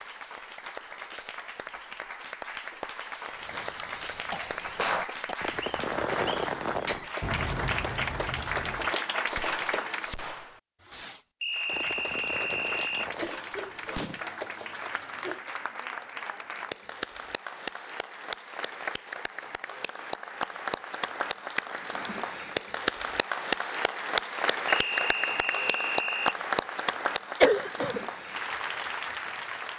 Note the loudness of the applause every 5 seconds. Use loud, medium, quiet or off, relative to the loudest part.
medium, loud, medium, medium, loud, loud.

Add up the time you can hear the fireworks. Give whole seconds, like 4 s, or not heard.
11 s.